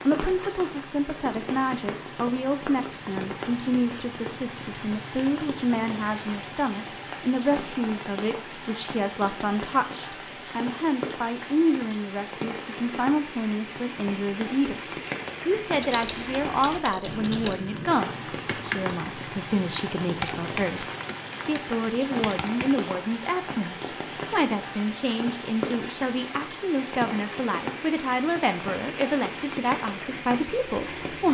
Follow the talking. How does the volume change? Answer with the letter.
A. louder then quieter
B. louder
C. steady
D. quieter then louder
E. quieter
C.